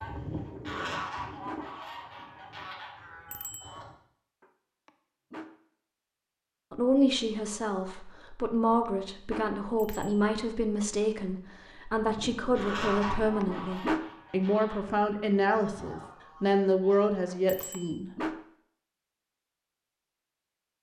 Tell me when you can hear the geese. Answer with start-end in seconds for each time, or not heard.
0.0-4.0, 11.9-17.1.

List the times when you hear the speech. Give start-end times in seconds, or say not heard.
6.7-18.2.